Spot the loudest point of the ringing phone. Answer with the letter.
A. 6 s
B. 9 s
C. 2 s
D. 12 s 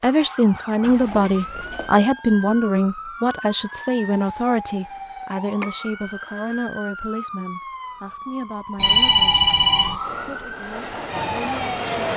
B.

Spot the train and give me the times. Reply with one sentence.
The train can be heard from 9.9 to 12.1 s.